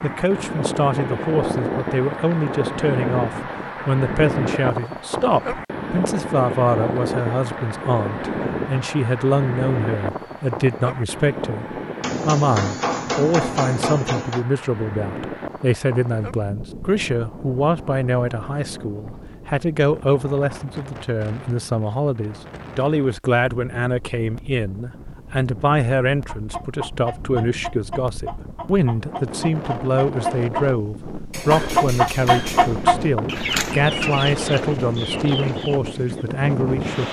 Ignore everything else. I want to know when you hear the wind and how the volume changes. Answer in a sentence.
The wind can be heard from 0.0 to 37.0 s, getting quieter then louder.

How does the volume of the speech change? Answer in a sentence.
The volume of the speech stays about the same.